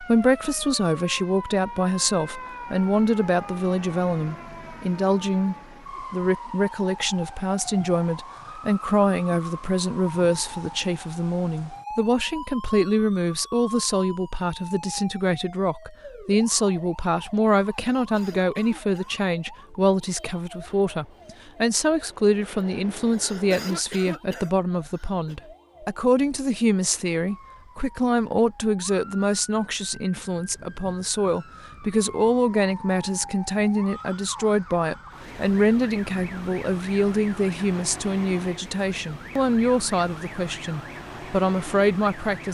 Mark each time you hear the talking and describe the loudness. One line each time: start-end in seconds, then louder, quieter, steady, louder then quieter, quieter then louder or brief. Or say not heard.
0.0-42.5 steady.